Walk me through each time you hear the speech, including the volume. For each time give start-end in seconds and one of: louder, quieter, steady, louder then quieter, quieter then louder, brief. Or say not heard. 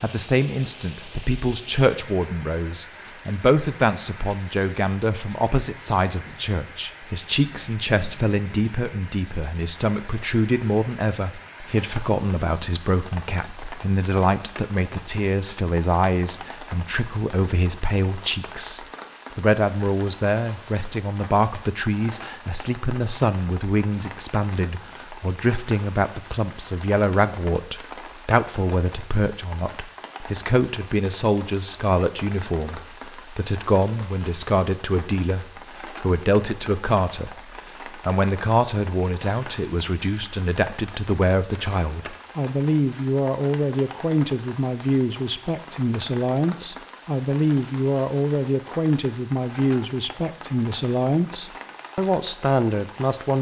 0.0-53.3 steady.